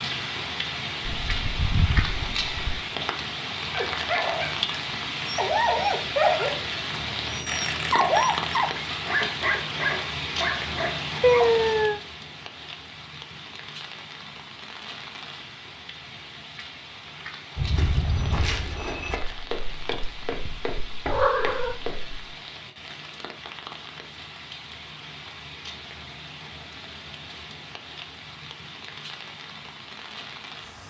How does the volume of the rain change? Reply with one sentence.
The volume of the rain goes down.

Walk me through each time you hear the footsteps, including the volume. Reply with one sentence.
You can hear the footsteps from 17.6 to 22.2 s, getting quieter.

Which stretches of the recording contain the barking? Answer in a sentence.
You can hear the barking from 3.7 to 11.7 s.